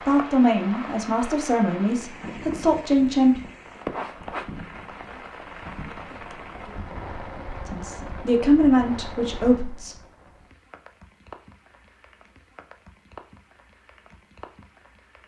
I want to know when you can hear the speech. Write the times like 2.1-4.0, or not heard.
0.1-3.4, 7.7-9.9.